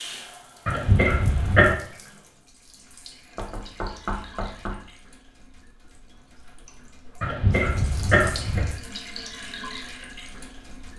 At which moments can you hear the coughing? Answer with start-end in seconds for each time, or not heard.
0.7-1.8, 7.2-8.7.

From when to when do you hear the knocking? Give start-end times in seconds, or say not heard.
3.4-4.8.